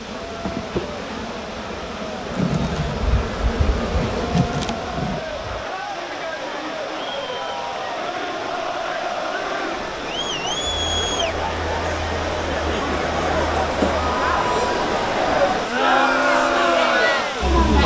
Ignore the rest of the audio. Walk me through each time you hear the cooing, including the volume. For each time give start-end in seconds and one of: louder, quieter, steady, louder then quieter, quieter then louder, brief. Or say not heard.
not heard.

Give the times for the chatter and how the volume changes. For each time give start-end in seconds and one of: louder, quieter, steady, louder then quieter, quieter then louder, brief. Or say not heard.
0.0-17.8 louder.